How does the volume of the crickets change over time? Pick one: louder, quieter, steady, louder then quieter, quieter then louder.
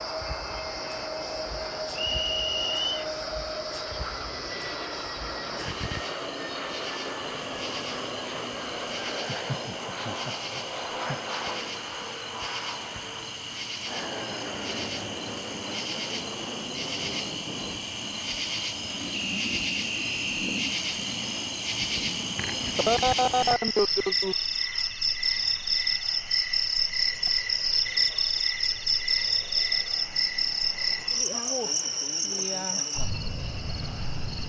louder.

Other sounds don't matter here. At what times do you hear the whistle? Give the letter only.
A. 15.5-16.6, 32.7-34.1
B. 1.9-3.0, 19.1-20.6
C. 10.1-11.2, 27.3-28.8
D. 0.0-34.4
B.